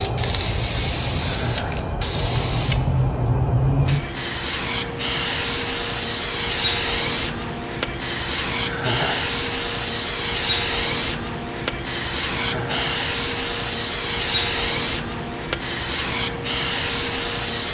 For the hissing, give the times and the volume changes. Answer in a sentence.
You can hear the hissing from 0.0 to 17.6 s, at a steady volume.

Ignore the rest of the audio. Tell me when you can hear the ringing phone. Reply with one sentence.
The ringing phone can't be heard in this clip.